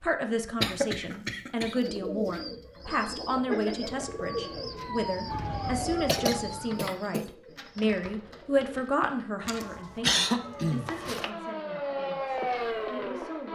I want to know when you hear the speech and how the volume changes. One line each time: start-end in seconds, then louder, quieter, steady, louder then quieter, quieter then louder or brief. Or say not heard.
0.0-13.5 quieter.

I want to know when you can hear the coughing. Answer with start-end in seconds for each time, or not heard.
0.6-1.8, 6.0-7.2, 9.4-11.3.